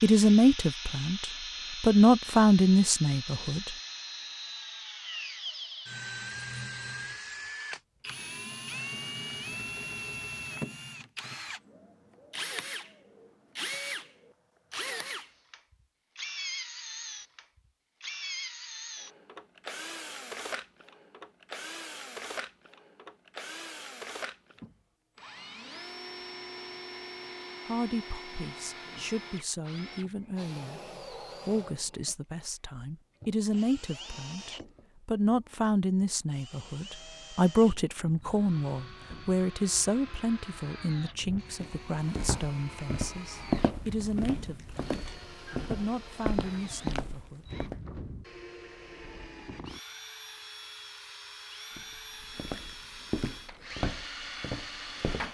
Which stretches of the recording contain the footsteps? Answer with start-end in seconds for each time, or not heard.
41.6-47.8, 51.8-55.2.